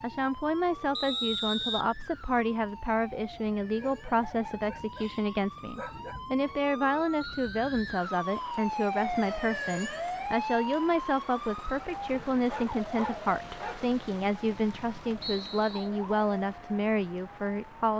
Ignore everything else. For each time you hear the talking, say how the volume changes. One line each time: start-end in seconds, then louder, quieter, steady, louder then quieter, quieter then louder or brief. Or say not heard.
0.0-17.9 steady.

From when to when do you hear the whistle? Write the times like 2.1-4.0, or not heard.
0.9-1.9, 7.2-7.9, 15.2-15.9.